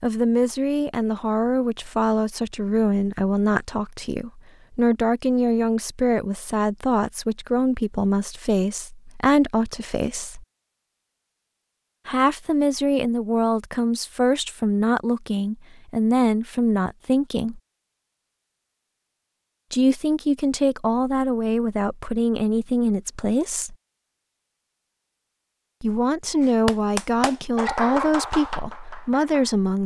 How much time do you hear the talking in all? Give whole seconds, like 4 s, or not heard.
24 s.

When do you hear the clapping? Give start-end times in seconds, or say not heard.
26.4-29.6.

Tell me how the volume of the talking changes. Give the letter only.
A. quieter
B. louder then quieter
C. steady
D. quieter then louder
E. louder
C.